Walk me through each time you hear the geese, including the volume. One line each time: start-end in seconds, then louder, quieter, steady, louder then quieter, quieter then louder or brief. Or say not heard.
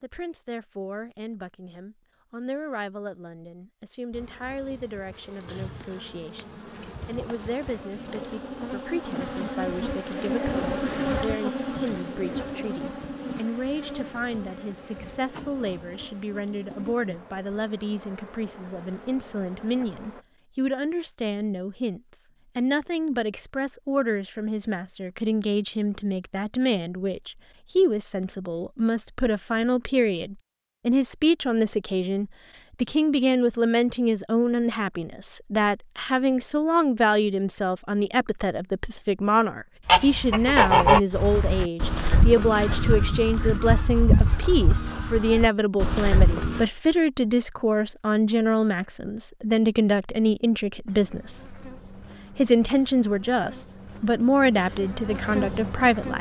39.9-46.6 quieter.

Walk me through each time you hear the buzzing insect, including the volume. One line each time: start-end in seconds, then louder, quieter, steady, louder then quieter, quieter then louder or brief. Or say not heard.
4.1-20.2 louder then quieter
50.9-56.1 louder.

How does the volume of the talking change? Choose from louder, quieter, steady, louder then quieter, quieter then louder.
louder.